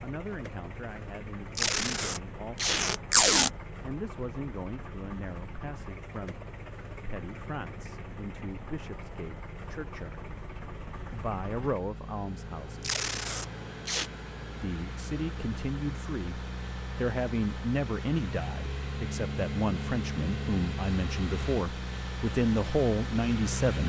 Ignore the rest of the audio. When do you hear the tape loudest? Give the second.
3 s.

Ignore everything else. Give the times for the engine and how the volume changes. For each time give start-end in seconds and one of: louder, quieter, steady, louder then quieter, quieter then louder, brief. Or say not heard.
0.0-23.8 louder.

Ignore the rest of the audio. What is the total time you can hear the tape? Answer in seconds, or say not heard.
3 s.